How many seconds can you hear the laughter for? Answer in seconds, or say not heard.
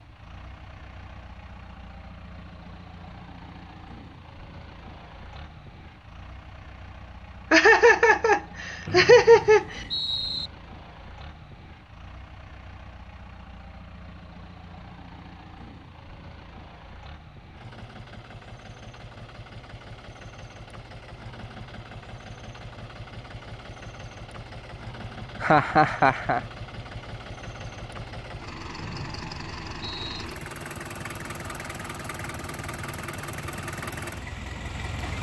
3 s.